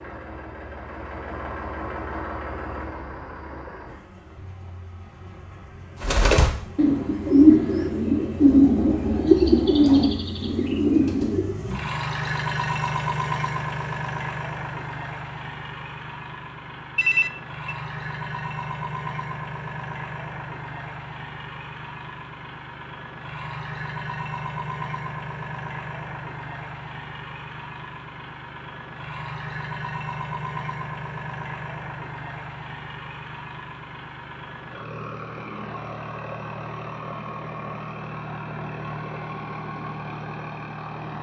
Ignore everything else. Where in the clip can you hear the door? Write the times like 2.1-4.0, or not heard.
not heard.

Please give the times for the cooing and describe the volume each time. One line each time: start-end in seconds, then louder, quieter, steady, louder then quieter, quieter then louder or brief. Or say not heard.
6.0-11.6 louder then quieter.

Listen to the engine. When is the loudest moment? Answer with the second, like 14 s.
13 s.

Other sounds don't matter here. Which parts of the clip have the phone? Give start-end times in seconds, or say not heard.
16.9-17.8.